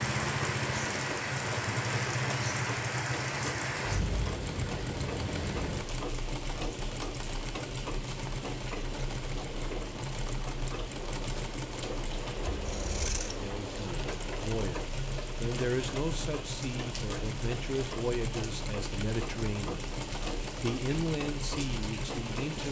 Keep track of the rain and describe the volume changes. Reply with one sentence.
The loudness of the rain goes down.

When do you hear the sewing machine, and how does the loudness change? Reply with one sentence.
The sewing machine can be heard from 0.0 to 22.6 s, at a steady volume.